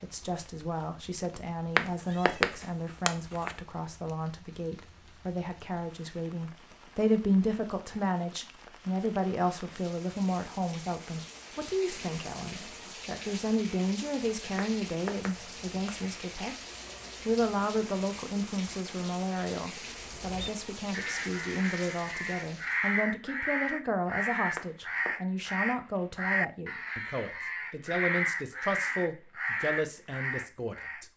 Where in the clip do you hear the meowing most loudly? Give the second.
2 s.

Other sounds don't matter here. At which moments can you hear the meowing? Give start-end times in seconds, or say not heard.
1.8-3.5, 14.6-15.9, 24.6-25.1.